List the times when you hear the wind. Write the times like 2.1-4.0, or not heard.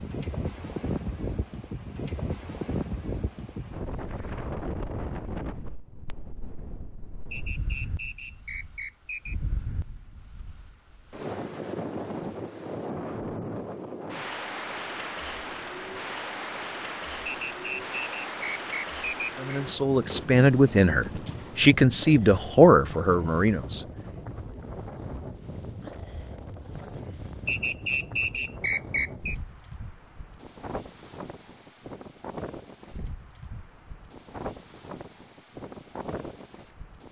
0.0-37.0.